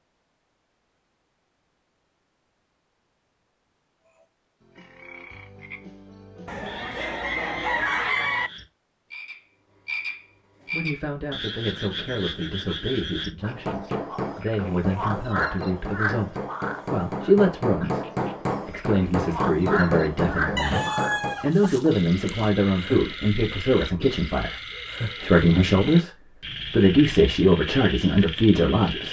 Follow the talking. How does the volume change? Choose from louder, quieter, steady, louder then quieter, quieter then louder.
louder.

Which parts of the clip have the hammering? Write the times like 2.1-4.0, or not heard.
13.4-21.4.